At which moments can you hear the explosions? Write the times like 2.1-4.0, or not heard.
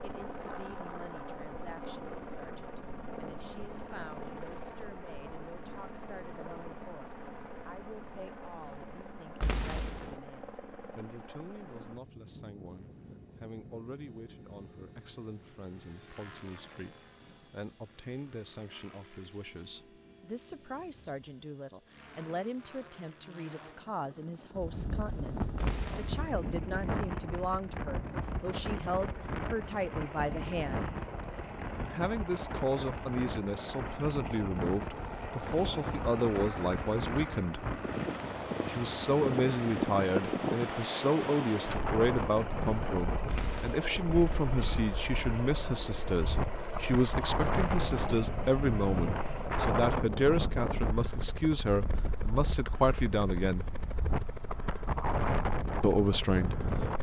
9.4-10.2, 25.6-26.2, 43.2-44.0.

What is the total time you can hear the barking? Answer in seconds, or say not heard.
not heard.